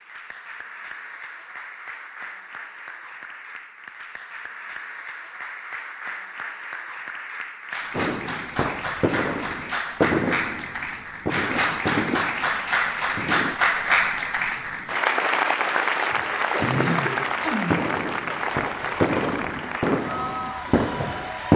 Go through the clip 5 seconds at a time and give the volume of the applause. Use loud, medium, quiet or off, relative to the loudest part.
quiet, medium, loud, loud, medium.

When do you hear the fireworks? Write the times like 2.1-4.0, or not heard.
8.0-13.6, 16.1-21.5.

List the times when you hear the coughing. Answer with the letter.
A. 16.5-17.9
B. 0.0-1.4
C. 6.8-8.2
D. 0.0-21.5
A.